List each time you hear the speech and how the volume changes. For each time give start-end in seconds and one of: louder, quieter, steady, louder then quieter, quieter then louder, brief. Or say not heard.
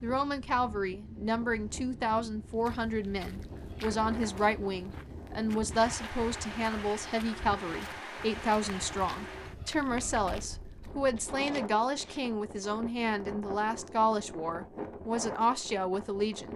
0.0-16.5 steady.